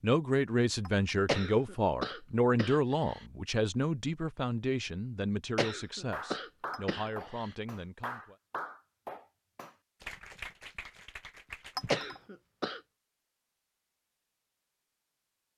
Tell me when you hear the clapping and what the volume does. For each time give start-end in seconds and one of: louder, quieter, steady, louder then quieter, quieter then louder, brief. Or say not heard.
6.1-12.1 quieter.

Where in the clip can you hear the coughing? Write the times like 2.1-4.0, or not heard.
1.2-3.2, 5.5-7.5, 11.9-12.8.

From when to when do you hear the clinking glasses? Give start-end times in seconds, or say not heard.
0.8-1.2, 6.7-7.2, 11.8-12.2.